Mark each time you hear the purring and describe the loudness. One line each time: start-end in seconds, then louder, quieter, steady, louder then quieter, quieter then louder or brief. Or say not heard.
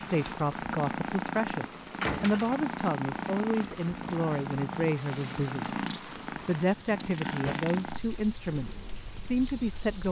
0.0-10.0 quieter.